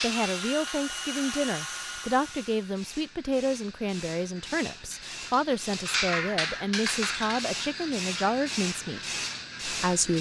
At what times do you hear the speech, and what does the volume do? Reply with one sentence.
You can hear the speech from 0.0 to 10.1 s, at a steady volume.